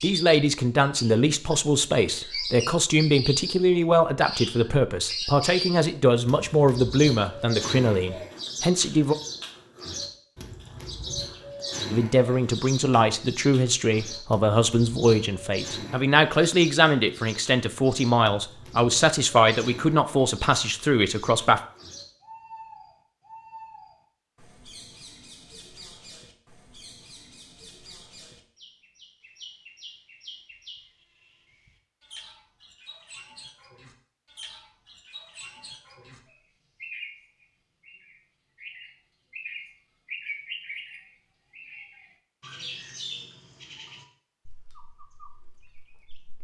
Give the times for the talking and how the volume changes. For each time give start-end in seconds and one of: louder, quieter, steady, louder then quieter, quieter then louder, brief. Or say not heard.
0.0-9.2 steady
11.9-21.6 steady.